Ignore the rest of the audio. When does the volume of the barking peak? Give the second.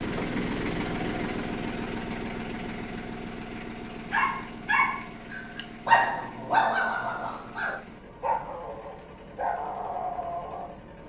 6 s.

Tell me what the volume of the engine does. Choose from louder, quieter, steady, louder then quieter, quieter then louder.
quieter.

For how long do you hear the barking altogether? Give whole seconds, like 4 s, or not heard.
7 s.